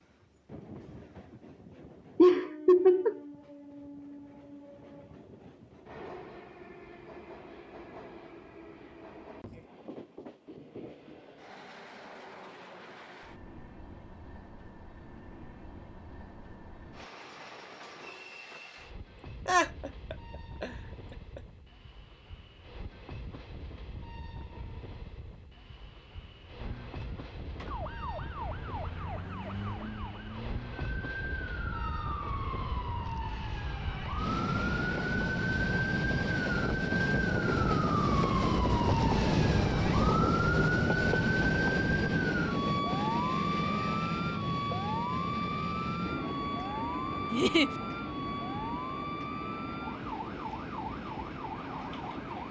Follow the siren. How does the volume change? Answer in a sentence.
The volume of the siren goes up, then down.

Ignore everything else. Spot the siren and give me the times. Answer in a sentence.
The siren can be heard from 26.6 to 52.4 s.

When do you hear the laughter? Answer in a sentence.
The laughter can be heard from 2.1 to 3.2 s, from 19.4 to 20.7 s and from 47.3 to 47.7 s.